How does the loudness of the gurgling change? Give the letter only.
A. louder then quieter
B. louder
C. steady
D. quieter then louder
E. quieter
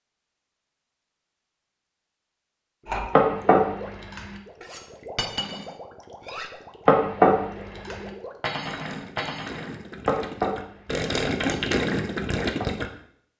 B.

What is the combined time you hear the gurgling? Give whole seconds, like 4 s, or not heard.
10 s.